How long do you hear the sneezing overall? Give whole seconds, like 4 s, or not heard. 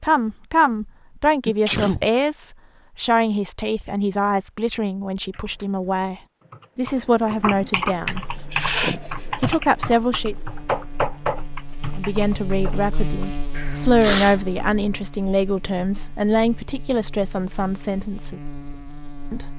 3 s.